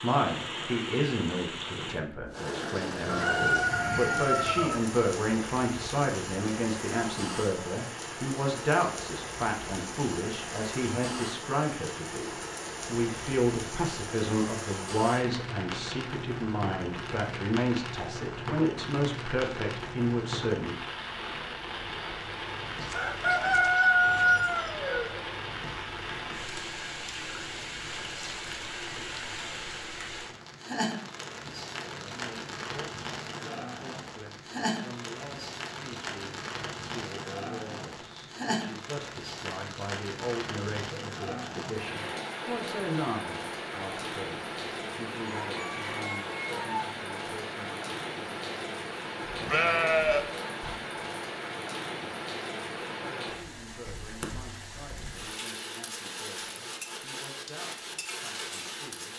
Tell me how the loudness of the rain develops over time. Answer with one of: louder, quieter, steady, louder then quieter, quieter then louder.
steady.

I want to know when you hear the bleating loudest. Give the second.
50 s.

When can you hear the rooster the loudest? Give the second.
24 s.